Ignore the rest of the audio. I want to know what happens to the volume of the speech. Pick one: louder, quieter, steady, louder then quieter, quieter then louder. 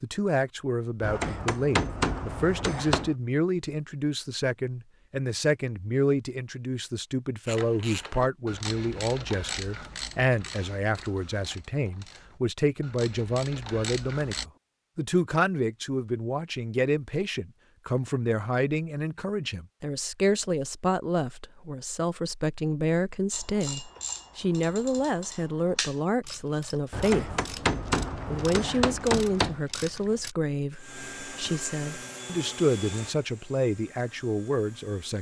steady.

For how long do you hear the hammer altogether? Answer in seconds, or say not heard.
5 s.